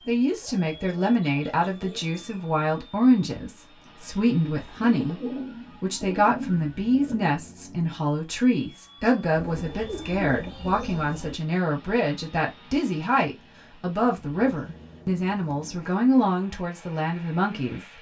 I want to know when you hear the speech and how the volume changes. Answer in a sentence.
You can hear the speech from 0.1 to 17.9 s, at a steady volume.